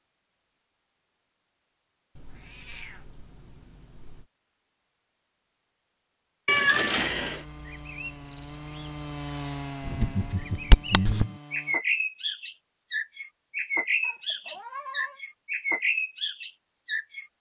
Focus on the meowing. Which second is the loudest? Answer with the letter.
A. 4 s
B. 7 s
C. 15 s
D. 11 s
B.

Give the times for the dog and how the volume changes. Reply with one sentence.
The dog can't be heard in this clip.